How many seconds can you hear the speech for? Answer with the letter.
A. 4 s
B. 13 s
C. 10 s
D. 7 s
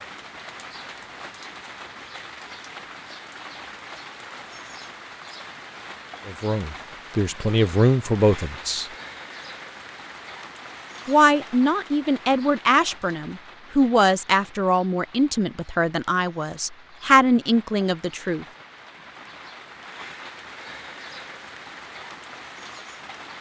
C.